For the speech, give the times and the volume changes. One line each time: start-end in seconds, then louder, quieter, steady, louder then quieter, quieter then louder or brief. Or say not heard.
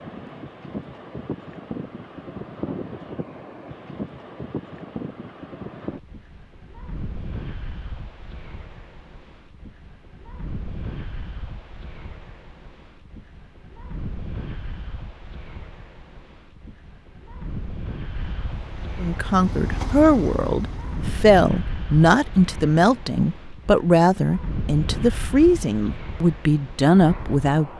19.0-27.7 steady.